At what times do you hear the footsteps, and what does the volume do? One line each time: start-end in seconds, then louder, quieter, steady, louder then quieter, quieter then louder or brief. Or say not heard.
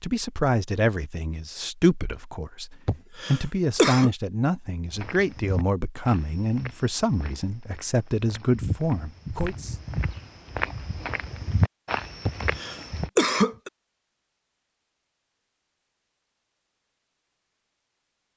4.9-13.1 quieter then louder.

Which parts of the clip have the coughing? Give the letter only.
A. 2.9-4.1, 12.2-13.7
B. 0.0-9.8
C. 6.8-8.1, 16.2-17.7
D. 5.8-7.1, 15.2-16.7
A.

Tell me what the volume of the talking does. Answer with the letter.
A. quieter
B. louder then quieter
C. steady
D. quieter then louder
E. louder
C.